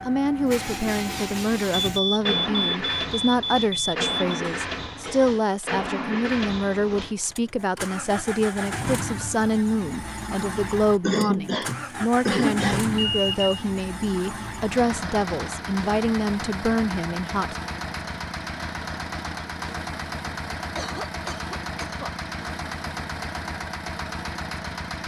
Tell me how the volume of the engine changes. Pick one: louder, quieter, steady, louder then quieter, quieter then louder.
steady.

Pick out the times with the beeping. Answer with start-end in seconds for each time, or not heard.
1.9-4.5, 12.9-13.6.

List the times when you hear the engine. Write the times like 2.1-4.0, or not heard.
0.0-25.0.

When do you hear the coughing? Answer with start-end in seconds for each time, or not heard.
4.2-5.4, 11.0-12.9, 20.8-22.1.